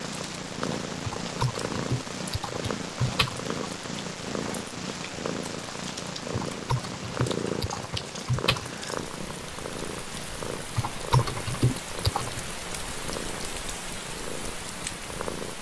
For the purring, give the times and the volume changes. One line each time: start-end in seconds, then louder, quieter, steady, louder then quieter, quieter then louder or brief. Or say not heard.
0.0-15.5 quieter.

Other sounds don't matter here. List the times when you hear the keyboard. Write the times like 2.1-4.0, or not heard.
1.0-3.5, 6.3-8.7, 10.8-12.4.